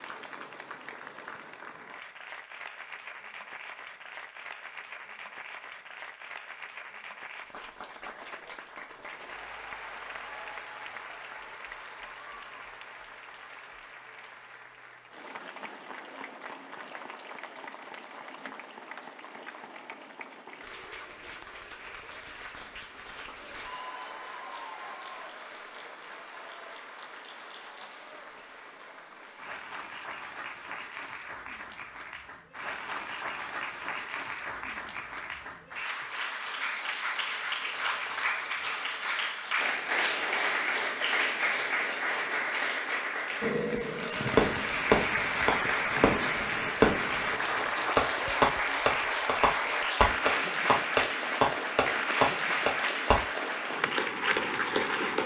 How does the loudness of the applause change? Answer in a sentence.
The volume of the applause goes up.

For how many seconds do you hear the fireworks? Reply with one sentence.
You can hear the fireworks for 9 seconds altogether.